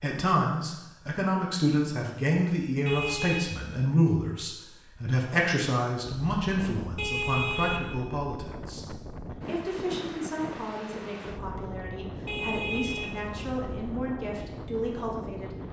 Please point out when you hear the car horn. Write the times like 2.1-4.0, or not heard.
2.9-3.5, 7.0-8.0, 12.2-14.0.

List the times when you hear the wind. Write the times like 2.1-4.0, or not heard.
6.0-15.6.